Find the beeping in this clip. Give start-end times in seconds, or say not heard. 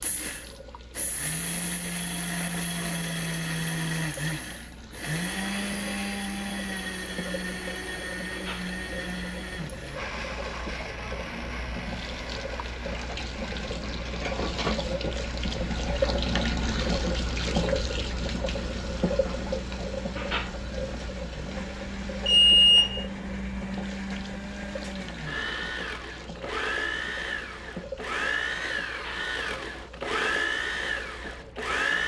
22.2-23.1.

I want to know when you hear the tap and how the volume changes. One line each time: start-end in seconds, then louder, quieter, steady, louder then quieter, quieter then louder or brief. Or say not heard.
0.0-32.0 louder then quieter.